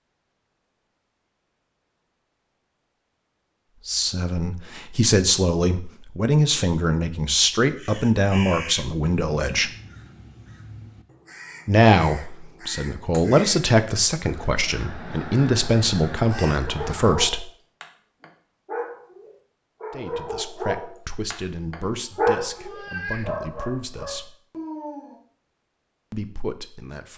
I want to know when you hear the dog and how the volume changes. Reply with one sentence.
The dog can be heard from 16.6 to 25.1 s, getting louder then quieter.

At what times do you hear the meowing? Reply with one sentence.
The meowing can be heard from 21.9 to 23.4 s.